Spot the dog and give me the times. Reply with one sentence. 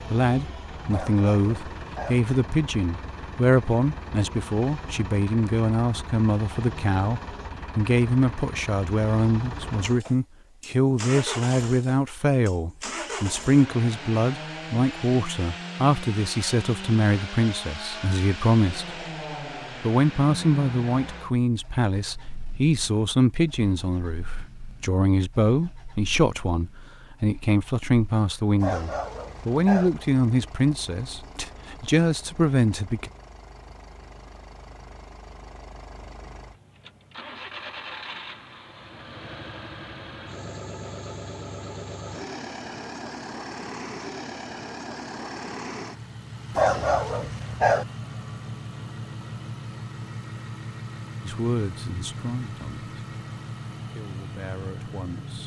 The dog can be heard from 0.9 to 2.2 s, from 28.6 to 29.9 s and from 46.5 to 47.9 s.